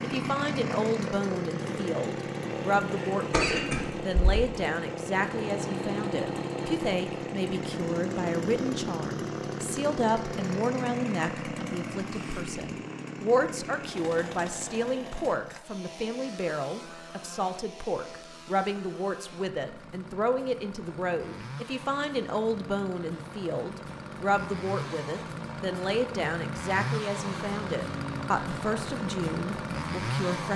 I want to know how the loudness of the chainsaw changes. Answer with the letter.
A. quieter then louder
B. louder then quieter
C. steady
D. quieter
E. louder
A.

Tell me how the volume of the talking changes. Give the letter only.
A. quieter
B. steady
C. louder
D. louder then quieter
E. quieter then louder
B.